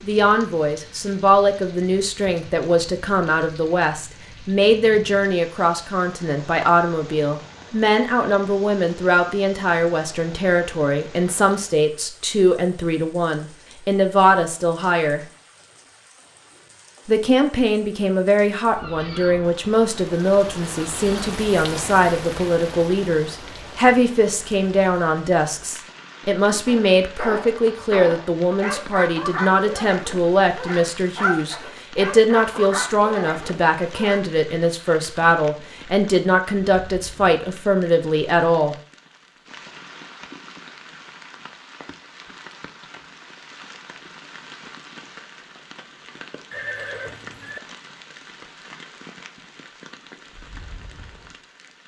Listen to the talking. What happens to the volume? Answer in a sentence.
The volume of the talking stays about the same.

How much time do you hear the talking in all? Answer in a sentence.
You can hear the talking for 37 seconds altogether.